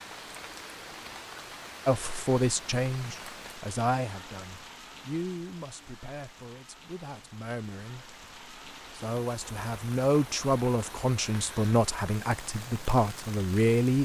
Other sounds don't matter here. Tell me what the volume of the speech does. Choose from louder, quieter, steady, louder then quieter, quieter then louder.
quieter then louder.